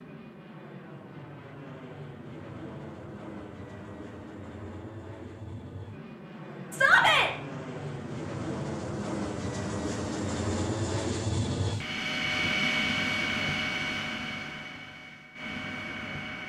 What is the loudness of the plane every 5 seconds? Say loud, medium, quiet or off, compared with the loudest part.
quiet, medium, loud, medium.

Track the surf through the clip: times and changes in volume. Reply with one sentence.
The surf can't be heard in this clip.